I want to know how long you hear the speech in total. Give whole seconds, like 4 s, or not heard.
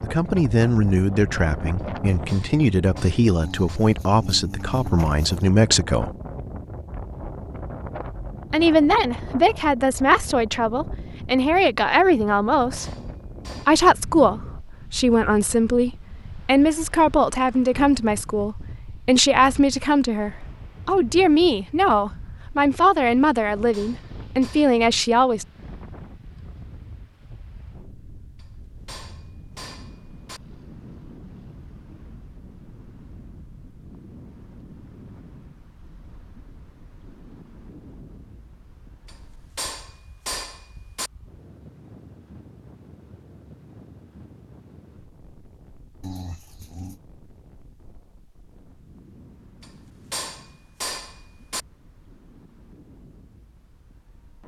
22 s.